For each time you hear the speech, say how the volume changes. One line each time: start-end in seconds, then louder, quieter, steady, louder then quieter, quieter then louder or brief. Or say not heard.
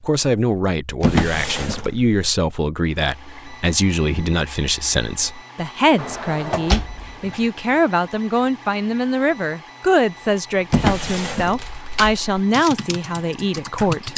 0.0-14.1 steady.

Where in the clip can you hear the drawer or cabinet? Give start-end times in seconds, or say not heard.
1.0-2.1, 6.0-7.5, 10.7-11.8.